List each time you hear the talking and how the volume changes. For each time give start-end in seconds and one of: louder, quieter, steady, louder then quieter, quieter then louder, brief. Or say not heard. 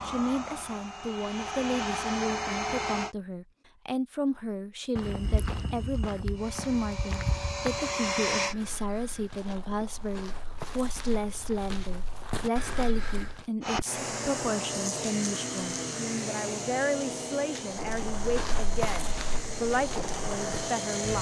0.0-21.1 steady.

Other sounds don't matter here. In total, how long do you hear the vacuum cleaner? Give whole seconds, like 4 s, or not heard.
13 s.